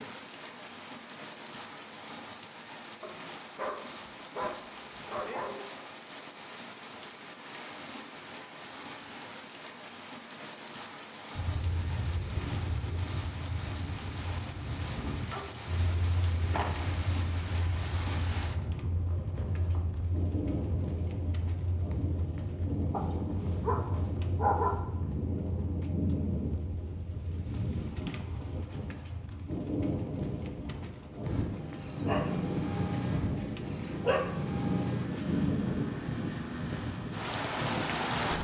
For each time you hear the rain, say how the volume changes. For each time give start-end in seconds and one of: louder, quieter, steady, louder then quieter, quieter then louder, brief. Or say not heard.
0.0-38.3 louder.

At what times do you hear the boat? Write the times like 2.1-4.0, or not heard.
11.3-38.3.